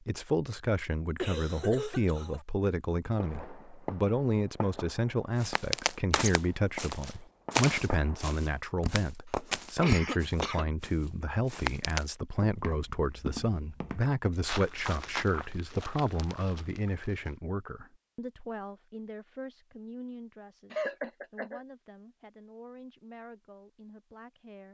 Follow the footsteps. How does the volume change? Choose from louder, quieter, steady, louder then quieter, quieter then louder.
quieter.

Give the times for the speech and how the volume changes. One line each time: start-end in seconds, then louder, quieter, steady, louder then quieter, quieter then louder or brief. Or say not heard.
0.1-24.7 quieter.